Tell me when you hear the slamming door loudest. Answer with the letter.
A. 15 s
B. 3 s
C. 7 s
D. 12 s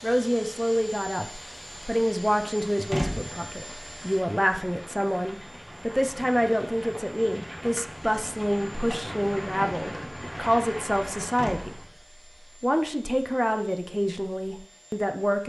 B.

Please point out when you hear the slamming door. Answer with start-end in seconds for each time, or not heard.
2.9-3.5, 11.3-11.9.